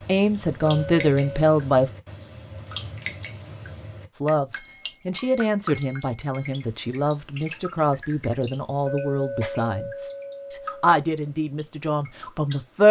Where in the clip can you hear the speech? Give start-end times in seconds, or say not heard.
0.1-1.9, 4.2-12.8.